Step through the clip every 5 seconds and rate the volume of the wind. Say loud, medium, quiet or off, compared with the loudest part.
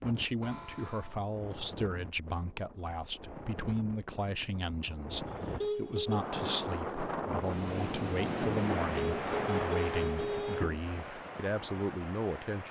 quiet, loud, medium.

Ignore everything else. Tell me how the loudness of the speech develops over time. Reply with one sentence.
The loudness of the speech stays about the same.